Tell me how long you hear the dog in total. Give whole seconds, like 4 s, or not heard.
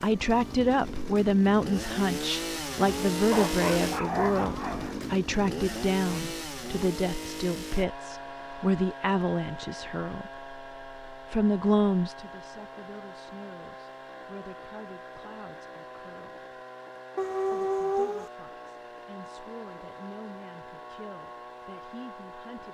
3 s.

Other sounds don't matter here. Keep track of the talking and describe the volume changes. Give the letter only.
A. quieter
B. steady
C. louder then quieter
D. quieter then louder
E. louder
A.